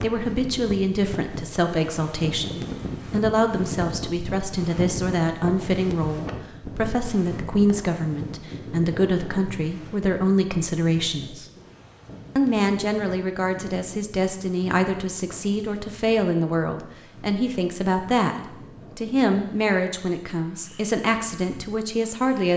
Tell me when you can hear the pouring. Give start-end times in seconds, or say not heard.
not heard.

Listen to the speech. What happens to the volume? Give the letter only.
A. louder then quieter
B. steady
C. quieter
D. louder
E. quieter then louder
B.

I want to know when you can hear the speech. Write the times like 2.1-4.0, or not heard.
0.0-11.4, 12.3-18.4, 18.9-22.5.